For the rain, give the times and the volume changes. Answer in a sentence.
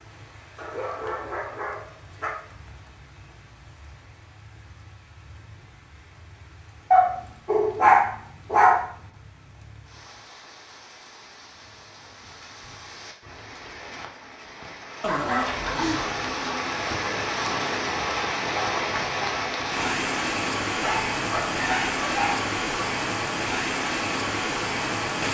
The rain can be heard from 0.0 to 25.2 s, getting louder.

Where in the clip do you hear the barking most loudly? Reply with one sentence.
The loudest moment of the barking is at 8 seconds.